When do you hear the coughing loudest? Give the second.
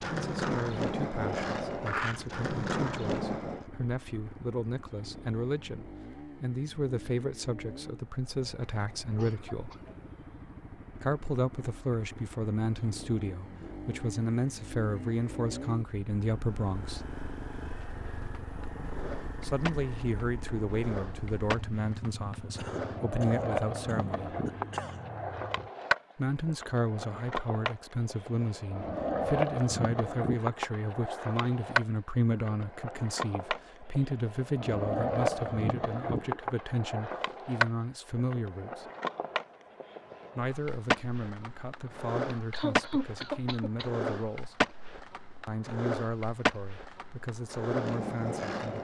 43 s.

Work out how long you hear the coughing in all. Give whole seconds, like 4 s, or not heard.
5 s.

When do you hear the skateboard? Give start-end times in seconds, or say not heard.
0.0-3.6, 17.8-48.7.